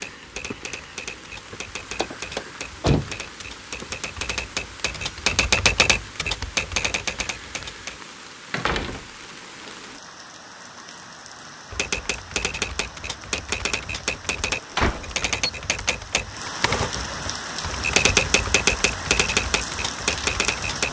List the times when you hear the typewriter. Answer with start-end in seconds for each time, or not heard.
0.0-8.0, 11.7-20.8.